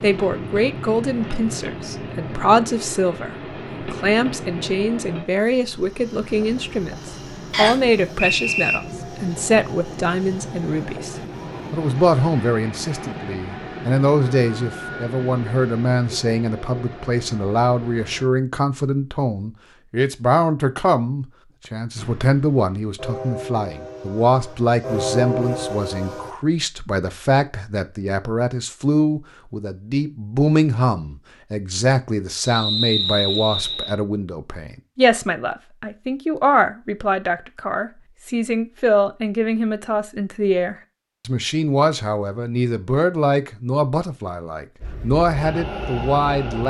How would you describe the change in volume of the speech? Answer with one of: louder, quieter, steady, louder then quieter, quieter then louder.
steady.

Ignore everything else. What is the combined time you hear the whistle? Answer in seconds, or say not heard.
3 s.